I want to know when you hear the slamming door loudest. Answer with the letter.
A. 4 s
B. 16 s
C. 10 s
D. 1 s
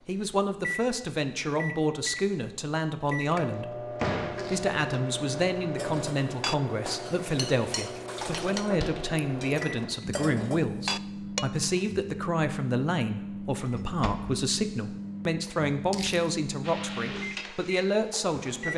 A.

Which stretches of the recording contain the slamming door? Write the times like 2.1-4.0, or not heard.
4.0-4.5, 8.7-9.1, 13.8-14.5.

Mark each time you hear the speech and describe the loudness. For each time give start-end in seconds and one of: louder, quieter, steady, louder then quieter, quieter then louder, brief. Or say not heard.
0.1-18.7 steady.